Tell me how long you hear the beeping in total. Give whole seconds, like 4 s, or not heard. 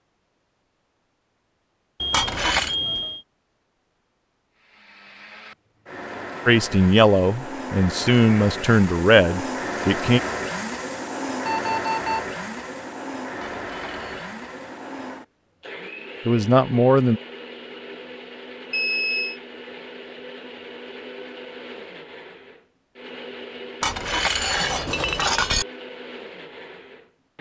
3 s.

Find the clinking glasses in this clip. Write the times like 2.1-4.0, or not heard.
2.1-2.8, 13.4-14.3, 23.8-25.6.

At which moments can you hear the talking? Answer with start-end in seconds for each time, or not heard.
6.5-10.2, 16.2-17.2.